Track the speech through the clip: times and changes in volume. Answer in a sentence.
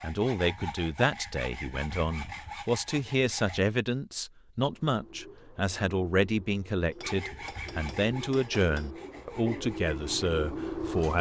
You can hear the speech from 0.0 to 11.1 s, at a steady volume.